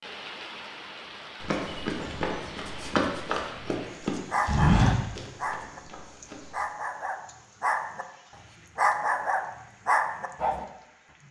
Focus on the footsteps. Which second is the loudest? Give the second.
5 s.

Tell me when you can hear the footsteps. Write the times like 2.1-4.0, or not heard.
1.4-6.3.